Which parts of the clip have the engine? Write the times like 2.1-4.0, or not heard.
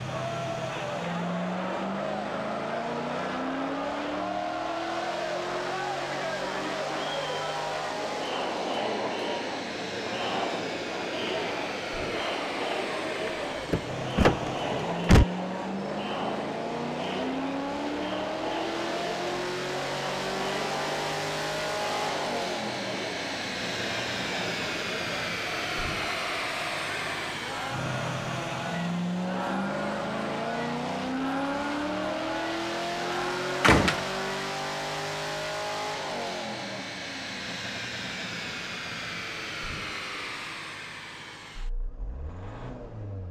0.0-43.2.